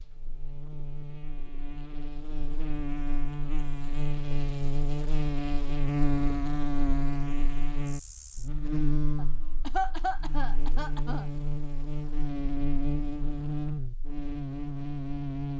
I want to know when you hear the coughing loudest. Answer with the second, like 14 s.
10 s.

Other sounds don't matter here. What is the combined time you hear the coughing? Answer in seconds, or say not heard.
2 s.